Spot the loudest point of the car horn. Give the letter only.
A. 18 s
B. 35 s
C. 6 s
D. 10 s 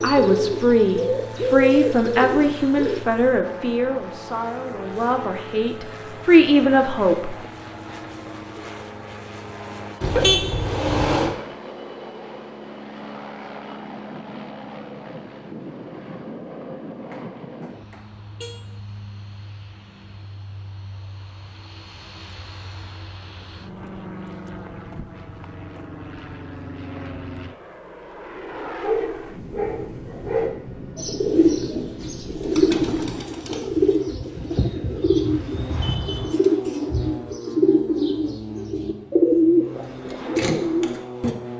D.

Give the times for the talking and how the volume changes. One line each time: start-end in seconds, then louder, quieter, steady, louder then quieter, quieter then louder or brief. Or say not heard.
0.0-7.3 quieter then louder.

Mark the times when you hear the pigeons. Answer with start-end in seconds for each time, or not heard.
0.0-3.0, 30.9-41.4.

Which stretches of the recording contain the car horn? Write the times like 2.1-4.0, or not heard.
10.0-11.3, 17.1-18.6, 34.5-36.2.